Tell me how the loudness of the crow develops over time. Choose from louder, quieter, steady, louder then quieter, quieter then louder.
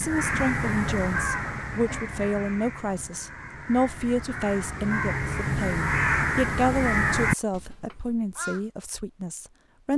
quieter then louder.